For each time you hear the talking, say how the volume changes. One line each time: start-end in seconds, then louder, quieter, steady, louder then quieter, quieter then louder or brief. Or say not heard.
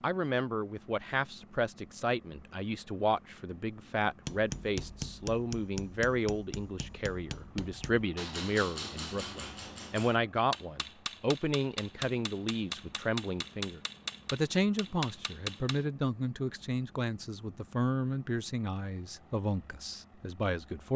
0.0-20.9 steady.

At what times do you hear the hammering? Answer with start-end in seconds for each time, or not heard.
4.2-15.8.